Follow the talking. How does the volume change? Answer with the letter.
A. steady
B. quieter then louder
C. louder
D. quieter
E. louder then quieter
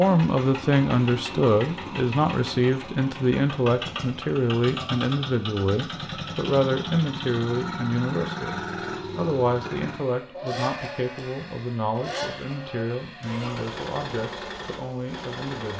D.